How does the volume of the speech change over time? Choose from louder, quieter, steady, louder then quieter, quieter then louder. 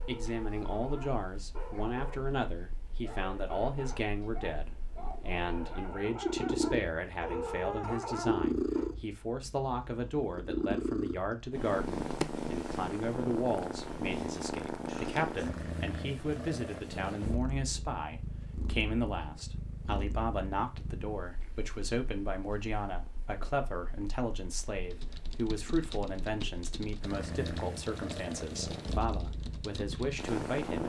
steady.